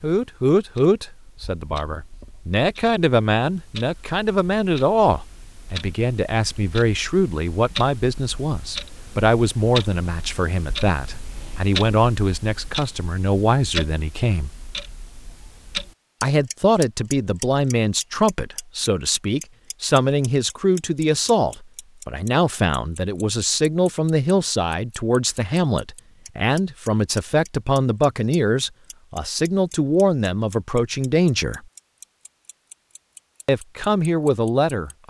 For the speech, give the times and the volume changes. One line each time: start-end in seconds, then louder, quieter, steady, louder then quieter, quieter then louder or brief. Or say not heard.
0.0-14.5 steady
16.2-31.6 steady
33.5-35.0 brief.